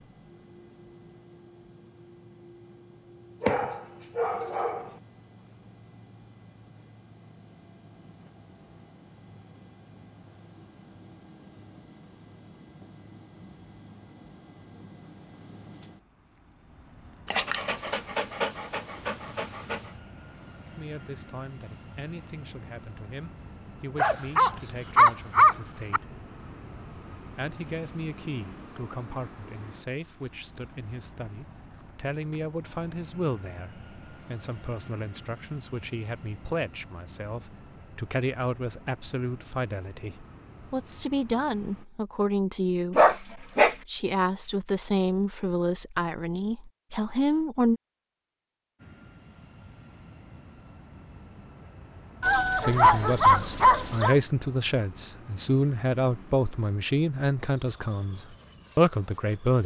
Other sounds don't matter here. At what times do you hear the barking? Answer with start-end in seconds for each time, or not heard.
3.4-4.8, 17.3-19.8, 23.9-26.0, 43.0-43.8, 52.2-54.1.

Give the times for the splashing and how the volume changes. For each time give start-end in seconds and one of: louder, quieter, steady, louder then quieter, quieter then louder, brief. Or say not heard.
not heard.